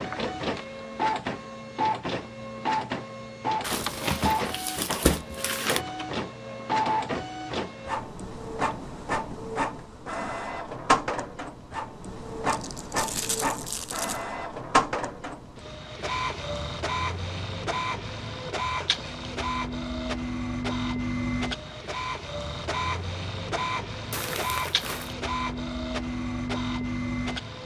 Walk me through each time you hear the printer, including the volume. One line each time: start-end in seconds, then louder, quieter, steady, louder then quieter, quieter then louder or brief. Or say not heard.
0.0-27.6 steady.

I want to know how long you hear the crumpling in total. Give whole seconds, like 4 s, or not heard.
5 s.